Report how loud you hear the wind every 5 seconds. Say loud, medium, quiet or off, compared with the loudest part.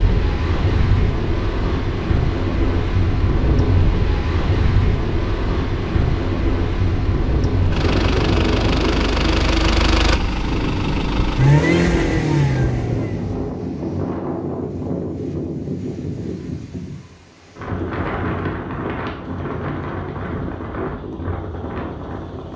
loud, loud, loud, loud, medium.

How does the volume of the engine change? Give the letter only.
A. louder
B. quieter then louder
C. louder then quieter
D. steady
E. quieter
A.